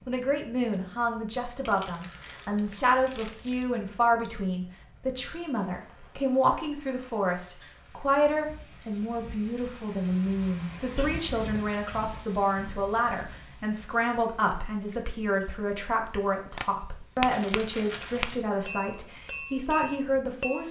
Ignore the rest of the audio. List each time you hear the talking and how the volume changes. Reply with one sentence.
The talking can be heard from 0.1 to 20.6 s, at a steady volume.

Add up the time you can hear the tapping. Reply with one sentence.
You can hear the tapping for 4 seconds altogether.